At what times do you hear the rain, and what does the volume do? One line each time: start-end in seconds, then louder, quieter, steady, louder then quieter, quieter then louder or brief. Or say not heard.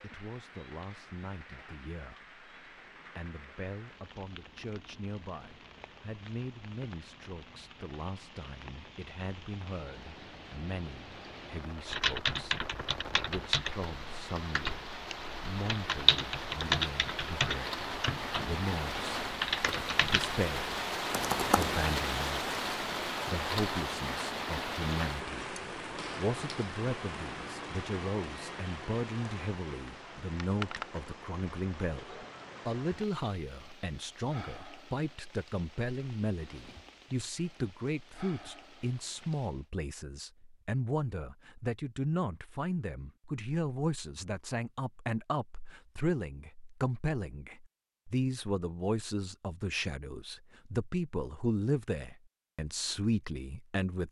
0.0-39.7 louder then quieter.